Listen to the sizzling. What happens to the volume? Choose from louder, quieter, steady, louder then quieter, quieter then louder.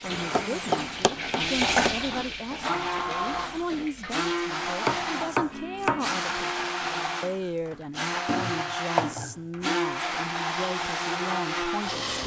louder then quieter.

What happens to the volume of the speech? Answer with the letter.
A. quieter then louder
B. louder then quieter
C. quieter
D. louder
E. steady
E.